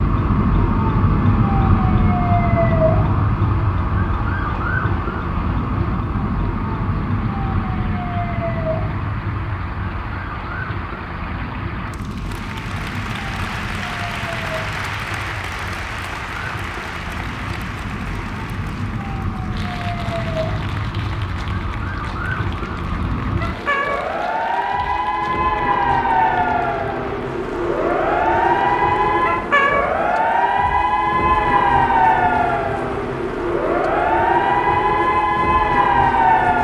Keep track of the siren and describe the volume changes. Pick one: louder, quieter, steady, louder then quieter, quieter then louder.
quieter then louder.